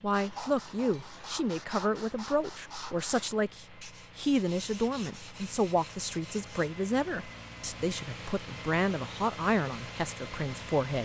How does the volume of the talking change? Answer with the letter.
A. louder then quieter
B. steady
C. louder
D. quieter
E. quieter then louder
B.